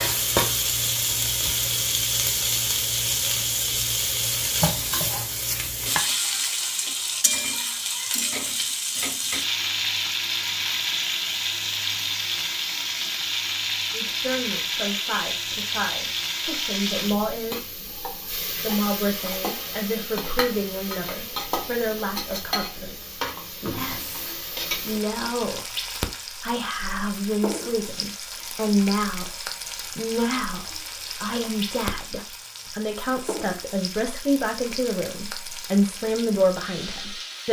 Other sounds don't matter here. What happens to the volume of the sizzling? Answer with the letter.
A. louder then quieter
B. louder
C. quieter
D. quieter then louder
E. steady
C.